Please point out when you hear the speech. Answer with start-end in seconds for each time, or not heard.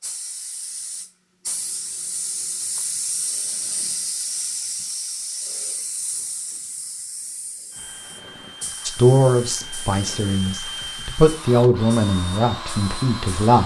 8.8-13.6.